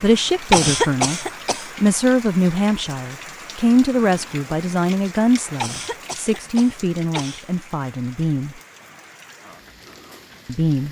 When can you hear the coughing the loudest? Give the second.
1 s.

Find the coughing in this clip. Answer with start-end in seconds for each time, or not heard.
0.5-1.6, 5.6-7.5.